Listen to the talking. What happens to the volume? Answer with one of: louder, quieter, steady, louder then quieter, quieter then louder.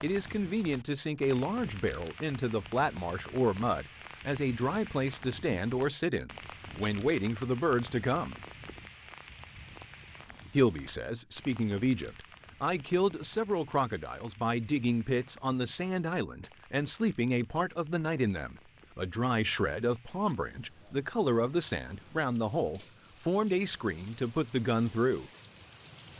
steady.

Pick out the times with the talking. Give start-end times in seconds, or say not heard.
0.0-8.3, 10.5-25.3.